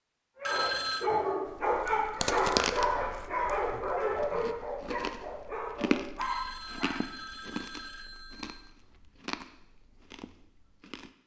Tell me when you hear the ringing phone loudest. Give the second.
1 s.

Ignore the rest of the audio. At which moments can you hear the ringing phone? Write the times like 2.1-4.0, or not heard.
0.5-1.1, 6.2-8.7.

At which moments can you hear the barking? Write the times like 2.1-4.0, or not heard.
0.3-7.0.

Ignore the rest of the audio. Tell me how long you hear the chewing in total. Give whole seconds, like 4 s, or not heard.
10 s.